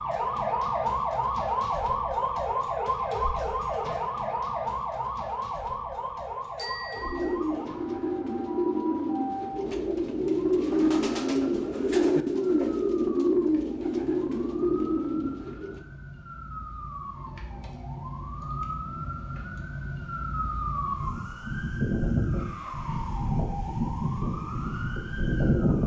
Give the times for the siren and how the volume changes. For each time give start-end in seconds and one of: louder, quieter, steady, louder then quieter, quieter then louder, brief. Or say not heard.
0.0-25.8 quieter then louder.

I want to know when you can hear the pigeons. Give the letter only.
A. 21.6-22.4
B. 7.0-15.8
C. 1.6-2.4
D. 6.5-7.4
B.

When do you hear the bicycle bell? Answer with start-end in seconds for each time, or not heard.
6.5-7.4.